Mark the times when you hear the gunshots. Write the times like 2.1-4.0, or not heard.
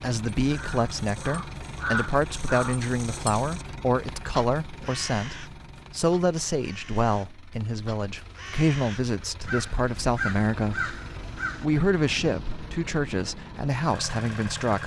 not heard.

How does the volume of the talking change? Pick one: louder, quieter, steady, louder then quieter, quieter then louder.
steady.